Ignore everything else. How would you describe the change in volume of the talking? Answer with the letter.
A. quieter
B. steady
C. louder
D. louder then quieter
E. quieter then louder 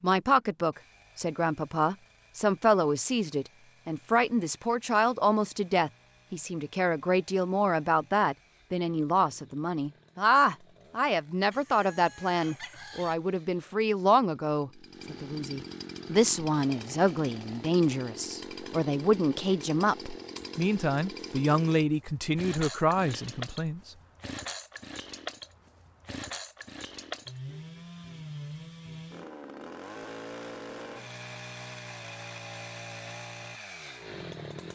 B.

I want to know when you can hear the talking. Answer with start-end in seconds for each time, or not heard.
0.0-23.8.